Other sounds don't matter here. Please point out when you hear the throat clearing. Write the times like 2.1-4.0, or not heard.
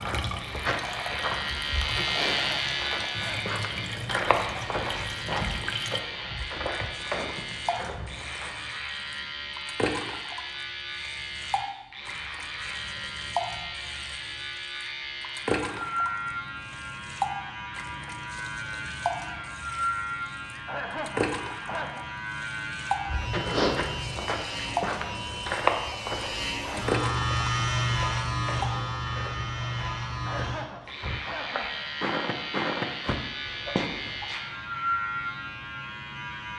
2.4-3.5, 20.6-22.1, 30.2-31.9.